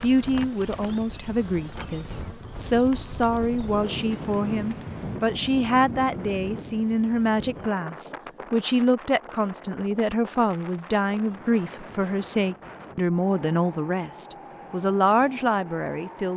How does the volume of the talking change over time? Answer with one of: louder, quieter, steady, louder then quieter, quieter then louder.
steady.